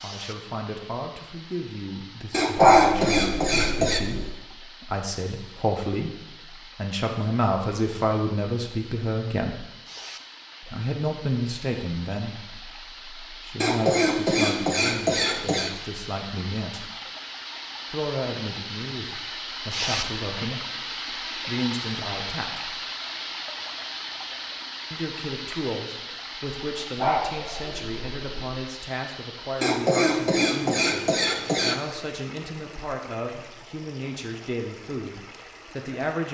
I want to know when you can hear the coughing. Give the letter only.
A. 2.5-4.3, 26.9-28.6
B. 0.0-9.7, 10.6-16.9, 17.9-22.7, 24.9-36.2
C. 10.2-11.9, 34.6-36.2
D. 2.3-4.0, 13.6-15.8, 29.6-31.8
D.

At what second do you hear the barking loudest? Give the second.
3 s.